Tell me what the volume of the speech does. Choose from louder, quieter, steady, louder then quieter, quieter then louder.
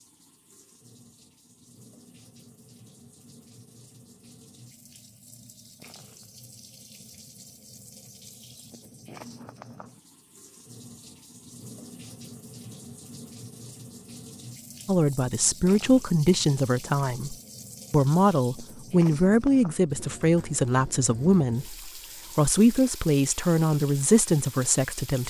steady.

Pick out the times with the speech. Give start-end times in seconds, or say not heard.
14.8-25.2.